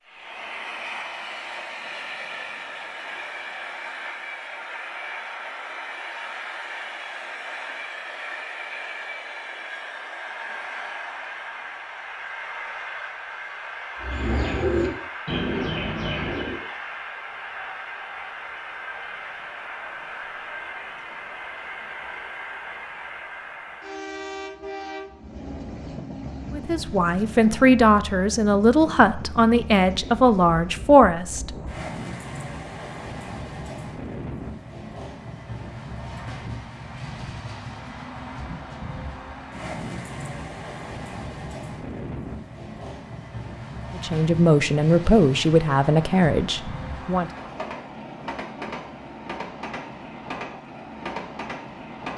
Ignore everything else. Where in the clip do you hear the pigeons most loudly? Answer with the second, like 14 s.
15 s.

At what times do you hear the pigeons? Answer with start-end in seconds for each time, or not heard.
13.9-16.6.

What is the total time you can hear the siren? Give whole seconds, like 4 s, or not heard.
not heard.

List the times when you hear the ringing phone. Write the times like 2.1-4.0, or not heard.
not heard.